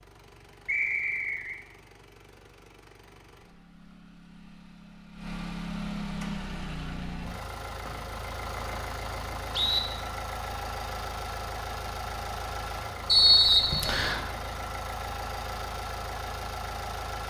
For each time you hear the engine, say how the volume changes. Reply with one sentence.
The engine can be heard from 0.0 to 17.2 s, getting louder.